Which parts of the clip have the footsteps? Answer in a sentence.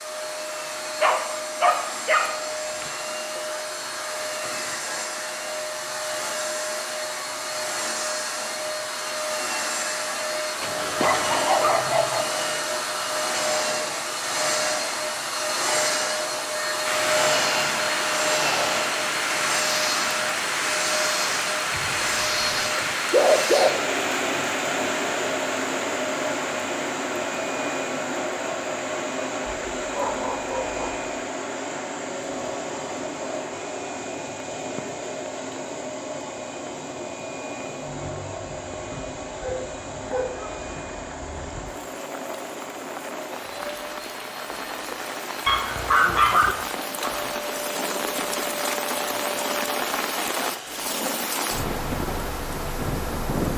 The footsteps can't be heard in this clip.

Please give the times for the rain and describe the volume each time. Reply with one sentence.
You can hear the rain from 16.9 to 53.5 s, getting quieter then louder.